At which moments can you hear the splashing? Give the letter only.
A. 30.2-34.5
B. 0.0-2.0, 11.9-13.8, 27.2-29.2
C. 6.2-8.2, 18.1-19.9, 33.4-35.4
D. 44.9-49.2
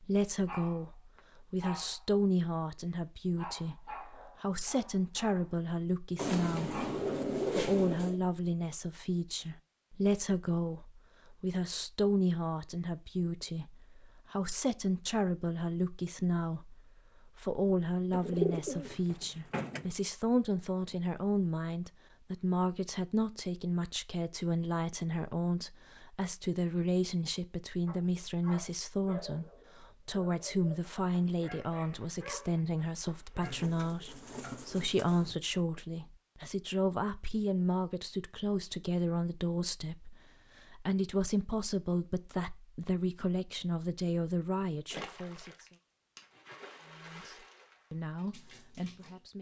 D.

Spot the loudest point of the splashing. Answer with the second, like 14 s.
45 s.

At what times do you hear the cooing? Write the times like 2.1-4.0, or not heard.
6.2-8.2, 18.1-19.9, 33.4-35.4.